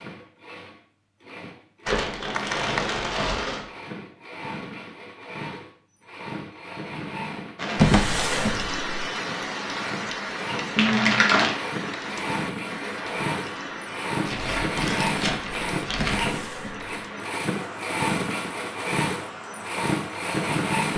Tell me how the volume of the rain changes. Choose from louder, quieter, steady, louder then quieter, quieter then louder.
quieter.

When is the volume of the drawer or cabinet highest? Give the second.
8 s.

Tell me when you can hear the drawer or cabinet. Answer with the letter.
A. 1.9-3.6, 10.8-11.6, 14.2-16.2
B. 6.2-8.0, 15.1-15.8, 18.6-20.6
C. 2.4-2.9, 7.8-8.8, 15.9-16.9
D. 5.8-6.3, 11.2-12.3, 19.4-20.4
C.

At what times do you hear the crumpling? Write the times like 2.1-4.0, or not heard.
1.9-3.6, 10.8-11.6, 14.2-16.2.